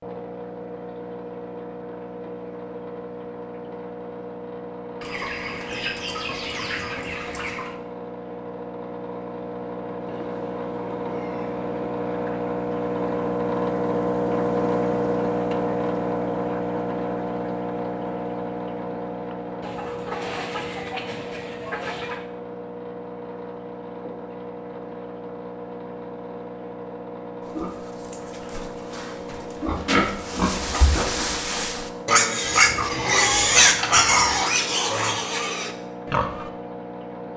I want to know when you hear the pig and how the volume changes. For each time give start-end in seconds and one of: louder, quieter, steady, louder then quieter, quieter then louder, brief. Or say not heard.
27.5-36.5 louder then quieter.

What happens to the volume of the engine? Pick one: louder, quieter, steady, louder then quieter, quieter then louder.
louder then quieter.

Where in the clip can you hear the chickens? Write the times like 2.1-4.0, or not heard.
5.0-7.8, 10.1-11.7, 19.6-22.2, 32.5-34.4.